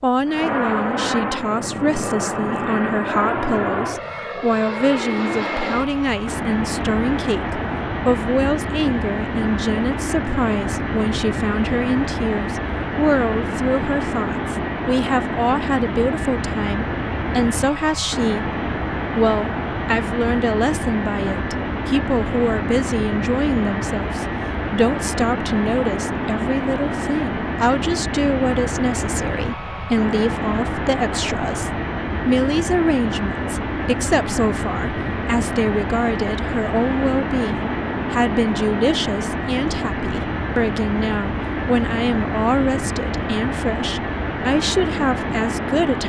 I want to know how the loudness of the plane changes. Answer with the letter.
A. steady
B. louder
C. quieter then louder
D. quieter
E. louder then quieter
A.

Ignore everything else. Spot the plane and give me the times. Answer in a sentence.
The plane can be heard from 0.0 to 46.0 s.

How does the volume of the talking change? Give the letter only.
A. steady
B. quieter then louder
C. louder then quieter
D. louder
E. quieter
A.